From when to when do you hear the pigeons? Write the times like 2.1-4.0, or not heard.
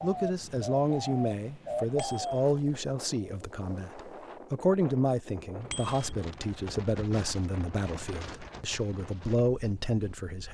0.0-4.4.